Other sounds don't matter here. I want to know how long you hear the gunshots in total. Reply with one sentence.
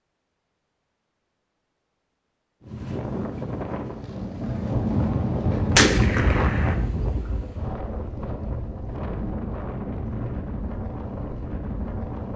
The gunshots can be heard for 2 seconds in total.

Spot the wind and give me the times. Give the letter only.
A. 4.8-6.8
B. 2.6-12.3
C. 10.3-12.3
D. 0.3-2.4
B.